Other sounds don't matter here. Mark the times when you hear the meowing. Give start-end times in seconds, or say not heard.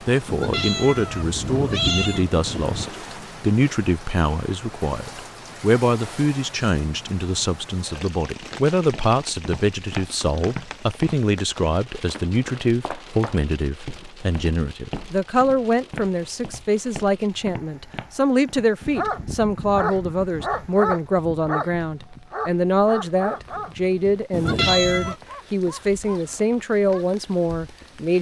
0.2-3.0, 24.3-25.1.